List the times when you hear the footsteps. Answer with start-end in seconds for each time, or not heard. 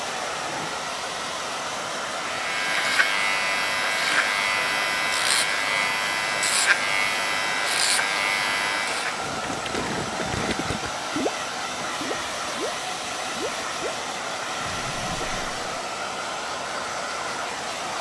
not heard.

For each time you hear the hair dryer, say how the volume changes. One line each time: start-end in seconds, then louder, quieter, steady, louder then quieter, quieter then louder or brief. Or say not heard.
0.0-17.9 steady.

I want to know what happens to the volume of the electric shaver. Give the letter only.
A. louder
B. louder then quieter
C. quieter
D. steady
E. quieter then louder
D.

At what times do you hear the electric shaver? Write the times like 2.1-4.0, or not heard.
2.1-9.2.